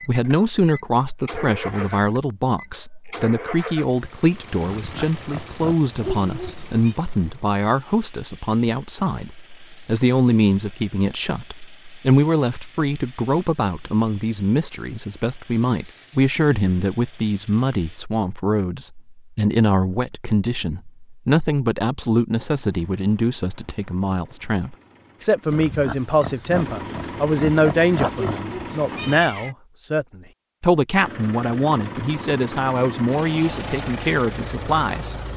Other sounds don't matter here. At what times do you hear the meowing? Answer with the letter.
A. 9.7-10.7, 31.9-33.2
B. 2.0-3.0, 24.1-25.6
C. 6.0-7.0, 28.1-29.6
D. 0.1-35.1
C.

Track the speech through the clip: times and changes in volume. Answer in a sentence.
You can hear the speech from 0.1 to 35.1 s, at a steady volume.